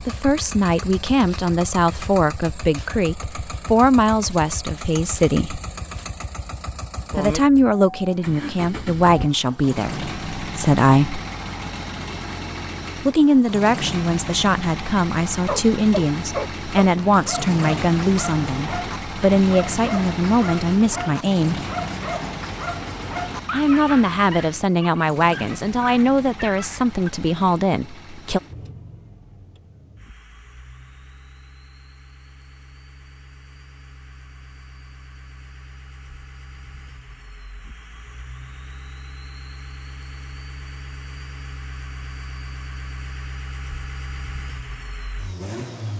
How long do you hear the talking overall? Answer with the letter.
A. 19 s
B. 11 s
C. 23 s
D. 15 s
C.